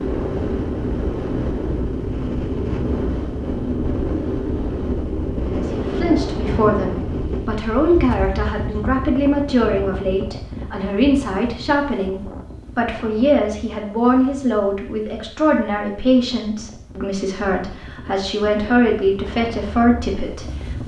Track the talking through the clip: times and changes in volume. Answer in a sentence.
The talking can be heard from 5.5 to 20.8 s, at a steady volume.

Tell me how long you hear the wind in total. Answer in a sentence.
The wind can be heard for 21 seconds in total.